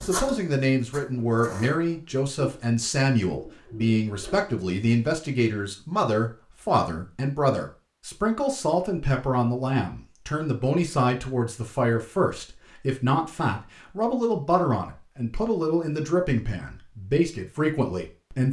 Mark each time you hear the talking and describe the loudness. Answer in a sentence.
The talking can be heard from 0.0 to 18.4 s, at a steady volume.